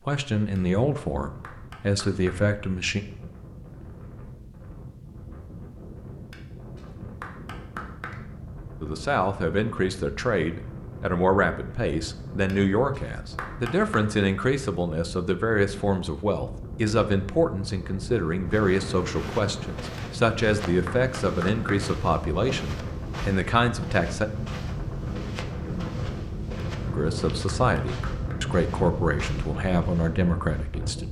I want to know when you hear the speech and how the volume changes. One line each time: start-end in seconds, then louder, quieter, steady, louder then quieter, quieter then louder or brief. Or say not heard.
0.1-3.0 brief
8.8-24.3 steady
26.9-31.0 steady.